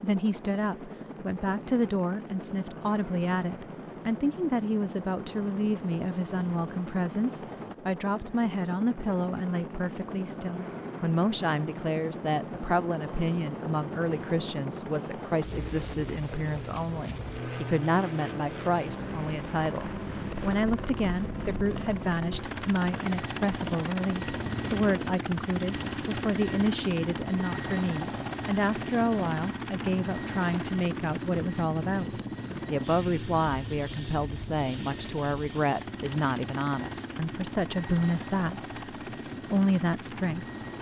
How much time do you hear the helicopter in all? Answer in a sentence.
The helicopter can be heard for 41 seconds in total.